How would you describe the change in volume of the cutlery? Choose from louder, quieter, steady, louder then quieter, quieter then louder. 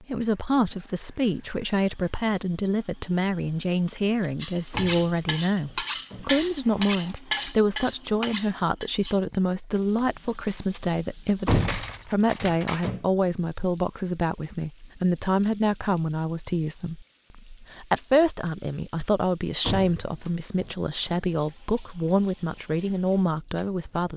quieter then louder.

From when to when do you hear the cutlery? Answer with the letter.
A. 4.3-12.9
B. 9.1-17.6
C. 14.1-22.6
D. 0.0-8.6
A.